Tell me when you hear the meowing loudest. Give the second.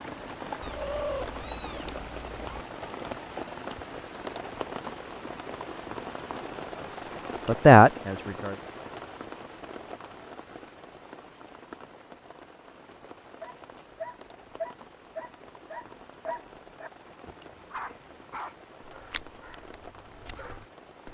1 s.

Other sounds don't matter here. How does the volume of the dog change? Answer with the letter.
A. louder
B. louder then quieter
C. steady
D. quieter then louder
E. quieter
E.